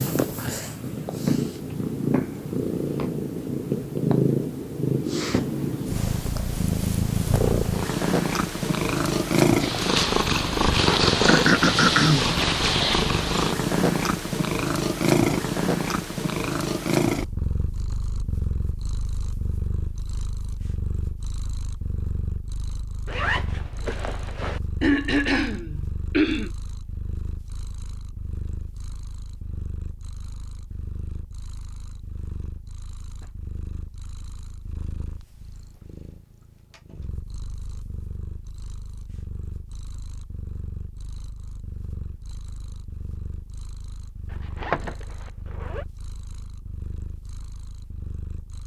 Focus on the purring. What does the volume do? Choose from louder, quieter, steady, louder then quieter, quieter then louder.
quieter.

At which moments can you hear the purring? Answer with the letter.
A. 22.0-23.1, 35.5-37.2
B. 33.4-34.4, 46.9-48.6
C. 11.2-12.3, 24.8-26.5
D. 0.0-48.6
D.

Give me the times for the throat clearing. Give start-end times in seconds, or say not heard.
11.2-12.3, 24.8-26.5.